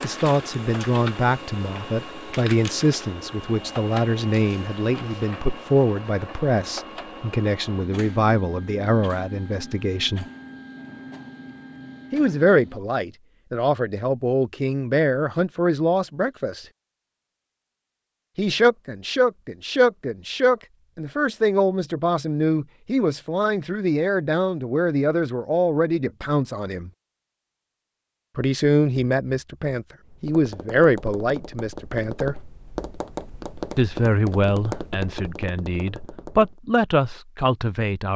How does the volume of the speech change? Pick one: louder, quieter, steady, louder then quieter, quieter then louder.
steady.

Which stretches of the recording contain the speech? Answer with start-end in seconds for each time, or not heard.
0.0-10.2, 12.1-16.6, 18.4-26.9, 28.4-32.4, 33.8-38.1.